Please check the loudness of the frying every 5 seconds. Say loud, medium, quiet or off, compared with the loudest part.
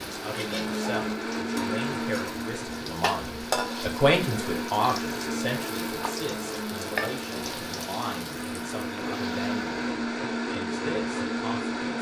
loud, loud, off.